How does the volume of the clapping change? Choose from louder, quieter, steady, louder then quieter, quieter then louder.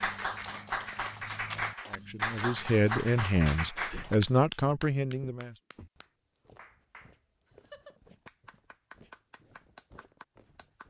quieter.